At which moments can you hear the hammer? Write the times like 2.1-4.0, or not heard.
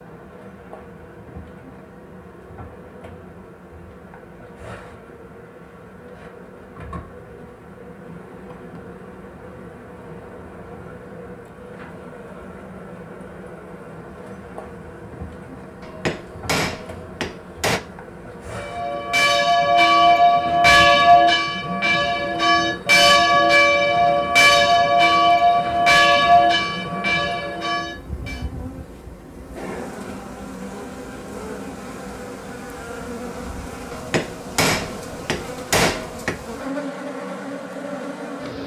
15.8-17.8, 33.9-36.4.